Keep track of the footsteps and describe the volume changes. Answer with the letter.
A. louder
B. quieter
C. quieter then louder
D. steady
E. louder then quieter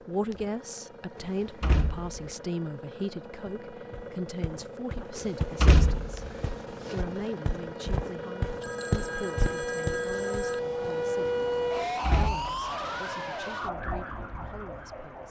A.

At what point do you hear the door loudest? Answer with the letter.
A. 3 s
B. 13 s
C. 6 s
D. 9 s
C.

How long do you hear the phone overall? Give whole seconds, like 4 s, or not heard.
2 s.